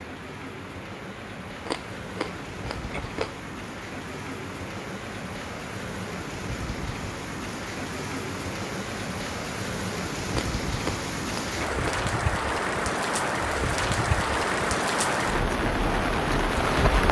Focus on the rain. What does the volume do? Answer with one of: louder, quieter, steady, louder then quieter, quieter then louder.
louder.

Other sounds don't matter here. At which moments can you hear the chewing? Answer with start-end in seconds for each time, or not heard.
1.6-3.4, 10.3-12.1.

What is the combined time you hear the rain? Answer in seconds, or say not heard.
17 s.